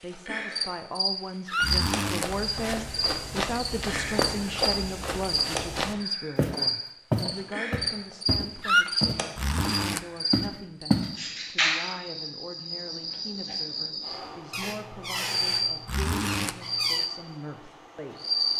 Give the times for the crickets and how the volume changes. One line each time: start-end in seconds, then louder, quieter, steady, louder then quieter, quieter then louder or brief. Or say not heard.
0.0-18.5 steady.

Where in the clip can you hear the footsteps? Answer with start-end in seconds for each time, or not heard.
2.2-11.2.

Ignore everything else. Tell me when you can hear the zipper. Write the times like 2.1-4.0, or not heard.
1.6-2.3, 9.3-10.1, 15.8-16.6.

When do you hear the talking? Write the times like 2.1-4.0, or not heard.
0.0-18.2.